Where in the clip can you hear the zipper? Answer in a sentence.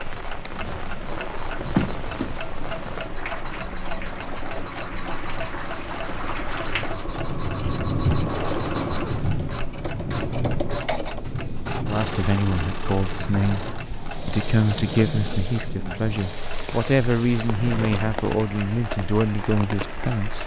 The zipper can be heard from 1.6 to 2.4 s.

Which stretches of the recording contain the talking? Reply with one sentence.
You can hear the talking from 11.8 to 13.7 s and from 14.2 to 20.4 s.